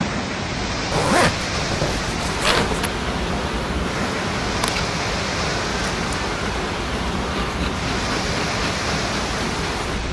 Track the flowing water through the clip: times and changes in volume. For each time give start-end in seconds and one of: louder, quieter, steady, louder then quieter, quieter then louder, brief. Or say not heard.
0.0-10.0 steady.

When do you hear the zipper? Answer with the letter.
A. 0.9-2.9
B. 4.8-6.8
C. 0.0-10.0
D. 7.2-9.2
A.